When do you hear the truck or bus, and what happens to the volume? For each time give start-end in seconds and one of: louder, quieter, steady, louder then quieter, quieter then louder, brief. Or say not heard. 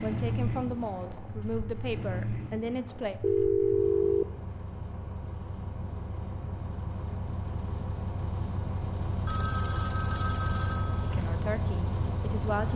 0.0-12.7 quieter then louder.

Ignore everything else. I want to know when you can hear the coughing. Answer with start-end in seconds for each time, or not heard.
not heard.